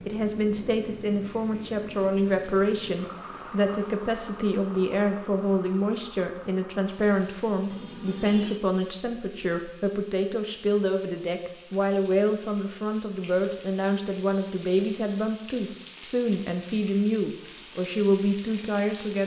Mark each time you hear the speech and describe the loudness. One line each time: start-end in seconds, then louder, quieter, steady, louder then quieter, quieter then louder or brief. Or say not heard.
0.1-19.2 steady.